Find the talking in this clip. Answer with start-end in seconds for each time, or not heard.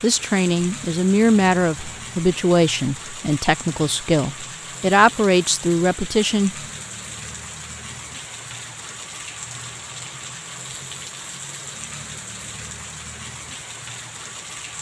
0.0-6.5.